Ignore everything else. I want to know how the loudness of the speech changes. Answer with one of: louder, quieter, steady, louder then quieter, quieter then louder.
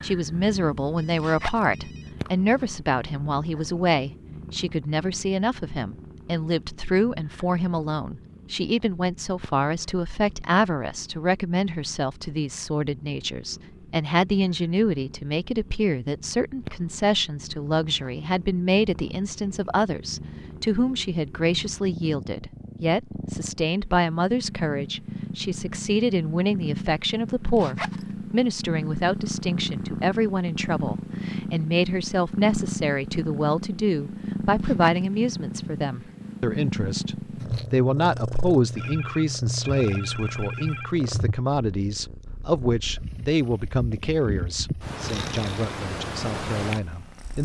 steady.